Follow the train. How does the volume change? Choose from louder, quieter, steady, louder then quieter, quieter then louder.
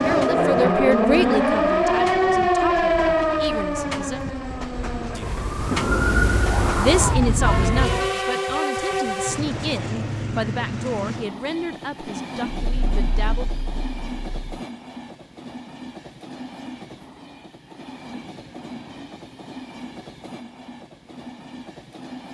louder then quieter.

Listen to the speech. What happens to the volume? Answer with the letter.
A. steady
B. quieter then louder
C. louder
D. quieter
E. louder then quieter
D.